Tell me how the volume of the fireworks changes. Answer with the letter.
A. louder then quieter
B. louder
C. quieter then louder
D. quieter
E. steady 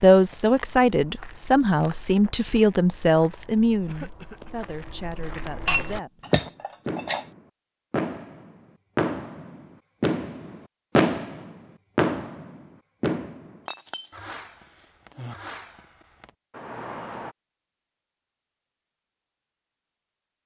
A.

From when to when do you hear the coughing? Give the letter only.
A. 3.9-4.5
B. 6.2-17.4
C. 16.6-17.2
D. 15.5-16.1
A.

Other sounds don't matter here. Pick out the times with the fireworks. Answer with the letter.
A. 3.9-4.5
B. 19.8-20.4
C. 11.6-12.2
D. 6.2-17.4
D.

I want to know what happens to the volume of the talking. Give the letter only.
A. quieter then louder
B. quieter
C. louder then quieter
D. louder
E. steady
B.